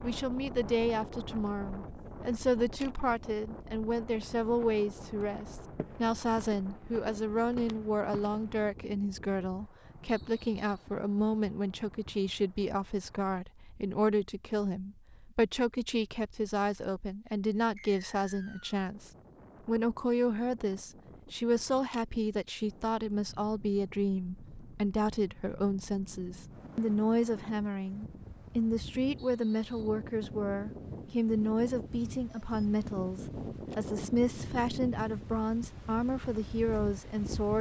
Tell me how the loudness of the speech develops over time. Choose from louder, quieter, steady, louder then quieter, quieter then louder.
steady.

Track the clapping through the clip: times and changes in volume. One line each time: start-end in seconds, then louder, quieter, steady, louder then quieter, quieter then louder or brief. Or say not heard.
not heard.